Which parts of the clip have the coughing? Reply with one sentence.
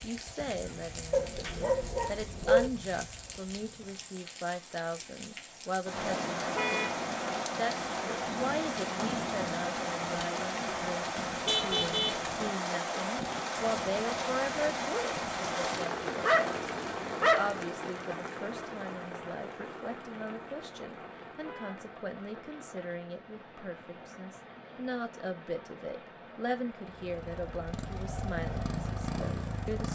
You can't hear the coughing here.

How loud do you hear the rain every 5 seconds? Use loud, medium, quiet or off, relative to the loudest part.
quiet, loud, loud, loud, quiet, quiet.